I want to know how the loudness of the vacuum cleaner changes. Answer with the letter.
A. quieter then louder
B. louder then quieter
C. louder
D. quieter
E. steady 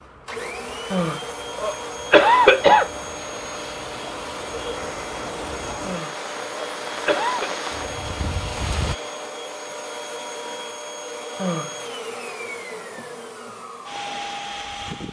E.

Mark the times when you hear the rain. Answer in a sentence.
The rain can be heard from 0.0 to 8.9 s.